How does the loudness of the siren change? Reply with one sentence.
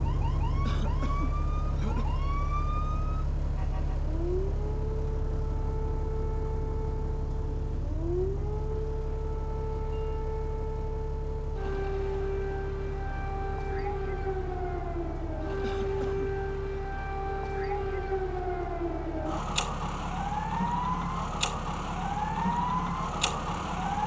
The volume of the siren goes up.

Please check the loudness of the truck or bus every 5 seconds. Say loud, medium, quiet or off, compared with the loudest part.
loud, loud, medium, medium, medium.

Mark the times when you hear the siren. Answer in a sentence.
The siren can be heard from 0.0 to 24.0 s.